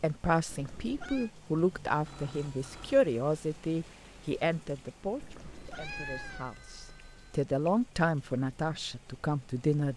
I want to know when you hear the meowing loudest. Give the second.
6 s.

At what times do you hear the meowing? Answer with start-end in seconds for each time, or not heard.
0.5-1.3, 5.2-6.5.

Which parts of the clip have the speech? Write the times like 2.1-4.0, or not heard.
0.0-9.9.